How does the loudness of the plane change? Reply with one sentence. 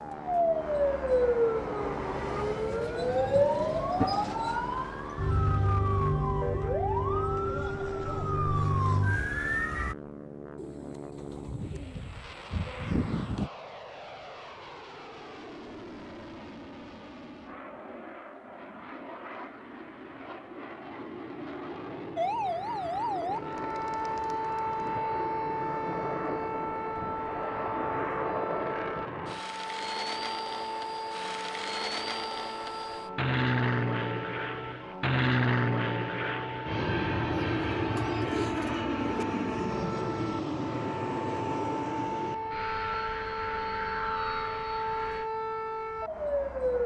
The loudness of the plane goes up.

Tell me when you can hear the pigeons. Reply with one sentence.
You can hear the pigeons from 10.6 to 13.5 s, from 23.4 to 24.9 s and from 37.3 to 39.2 s.